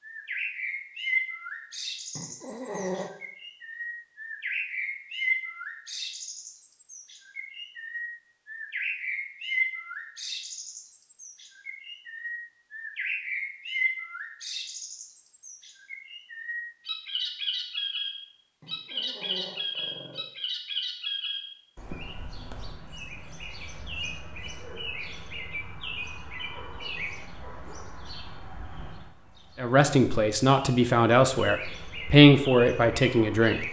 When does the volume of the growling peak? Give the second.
3 s.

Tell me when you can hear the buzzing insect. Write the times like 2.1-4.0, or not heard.
not heard.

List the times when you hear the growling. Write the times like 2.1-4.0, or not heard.
2.1-3.1, 18.6-20.2.